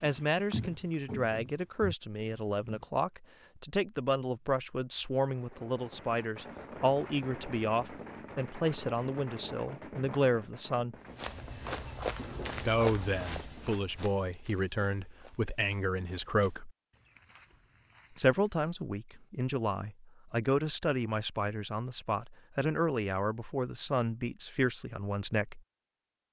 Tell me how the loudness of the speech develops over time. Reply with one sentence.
The volume of the speech stays about the same.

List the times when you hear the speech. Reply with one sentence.
You can hear the speech from 0.0 to 10.9 s, from 12.6 to 16.7 s and from 18.1 to 25.6 s.